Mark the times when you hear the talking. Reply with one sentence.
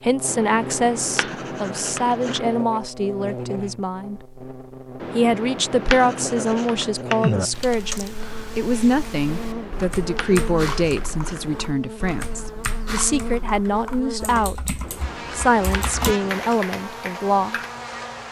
You can hear the talking from 0.0 to 4.2 s, from 5.2 to 14.7 s and from 15.3 to 17.6 s.